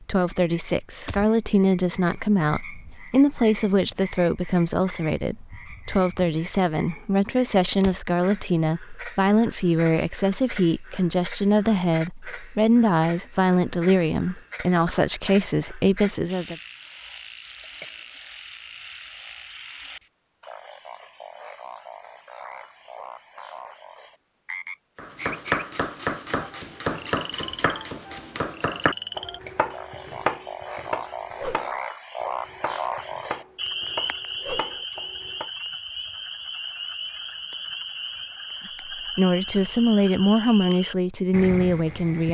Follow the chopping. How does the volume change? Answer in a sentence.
The loudness of the chopping goes down.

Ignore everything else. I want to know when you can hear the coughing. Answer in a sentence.
The coughing can be heard from 17.6 to 18.2 s and from 29.2 to 29.7 s.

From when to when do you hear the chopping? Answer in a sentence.
The chopping can be heard from 24.9 to 35.5 s.